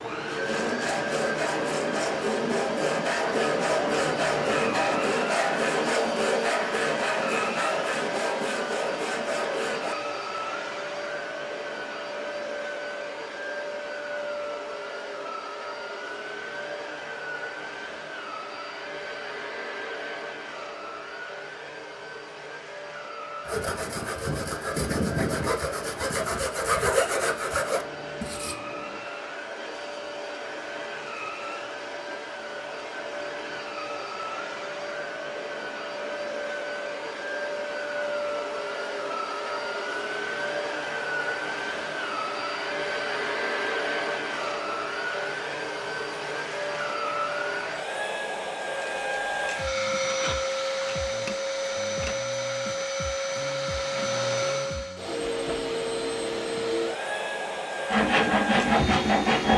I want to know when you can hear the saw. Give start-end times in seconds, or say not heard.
0.1-9.9, 23.4-28.6, 57.9-59.5.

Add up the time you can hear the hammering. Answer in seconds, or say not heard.
not heard.